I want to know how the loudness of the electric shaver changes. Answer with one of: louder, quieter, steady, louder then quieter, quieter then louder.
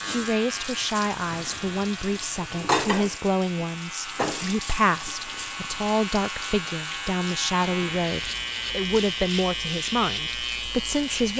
louder.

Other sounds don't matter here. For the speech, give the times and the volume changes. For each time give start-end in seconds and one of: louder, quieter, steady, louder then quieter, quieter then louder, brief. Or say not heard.
0.0-11.3 steady.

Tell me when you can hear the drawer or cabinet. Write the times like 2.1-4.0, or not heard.
not heard.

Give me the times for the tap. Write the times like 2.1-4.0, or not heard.
0.0-11.2.